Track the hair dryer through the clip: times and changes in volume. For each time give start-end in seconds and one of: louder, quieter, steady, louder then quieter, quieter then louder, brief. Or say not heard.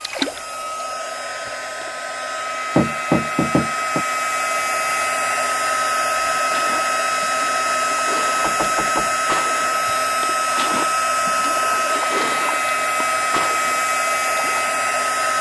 0.0-15.3 louder.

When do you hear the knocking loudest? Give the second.
3 s.